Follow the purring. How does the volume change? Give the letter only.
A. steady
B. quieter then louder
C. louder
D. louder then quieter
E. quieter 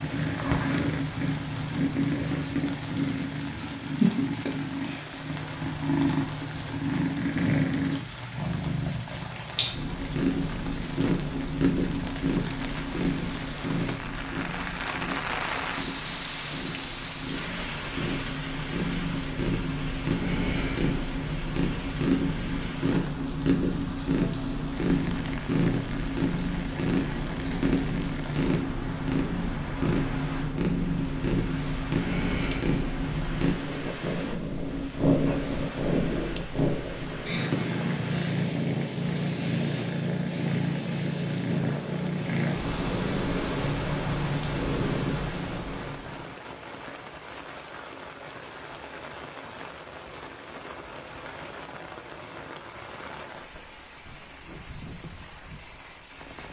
A.